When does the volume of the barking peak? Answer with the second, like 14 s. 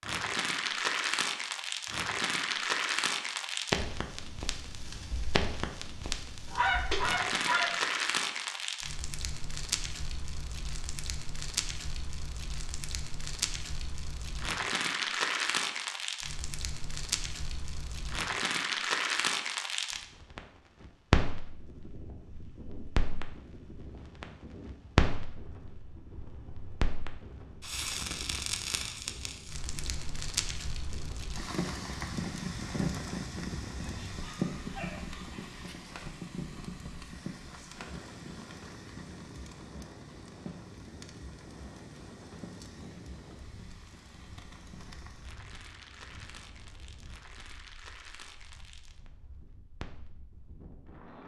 7 s.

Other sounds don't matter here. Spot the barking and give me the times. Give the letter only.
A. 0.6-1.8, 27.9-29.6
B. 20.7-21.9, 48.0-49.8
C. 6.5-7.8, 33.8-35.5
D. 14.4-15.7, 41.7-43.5
C.